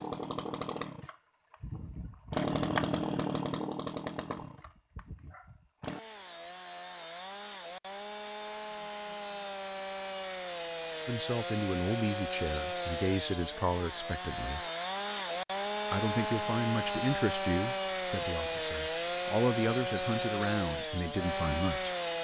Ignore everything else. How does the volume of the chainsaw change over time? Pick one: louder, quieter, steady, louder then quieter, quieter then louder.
quieter then louder.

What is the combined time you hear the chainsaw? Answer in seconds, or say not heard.
22 s.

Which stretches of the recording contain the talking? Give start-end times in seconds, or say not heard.
11.1-14.6, 15.9-21.9.